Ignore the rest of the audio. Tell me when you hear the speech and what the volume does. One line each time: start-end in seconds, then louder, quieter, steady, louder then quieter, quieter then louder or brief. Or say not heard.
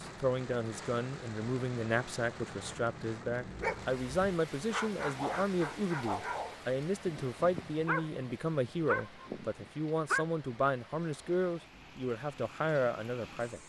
0.0-13.6 steady.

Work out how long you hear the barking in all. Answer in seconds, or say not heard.
7 s.